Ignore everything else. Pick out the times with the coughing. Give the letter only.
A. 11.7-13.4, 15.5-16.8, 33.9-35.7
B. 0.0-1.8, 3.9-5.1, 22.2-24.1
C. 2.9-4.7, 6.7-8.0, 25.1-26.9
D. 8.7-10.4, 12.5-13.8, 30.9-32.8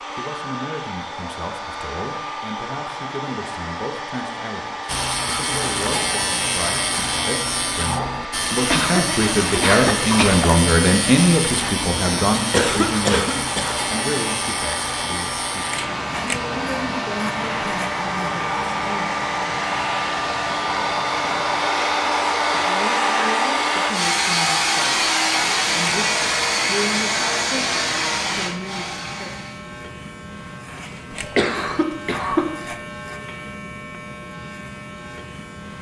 D.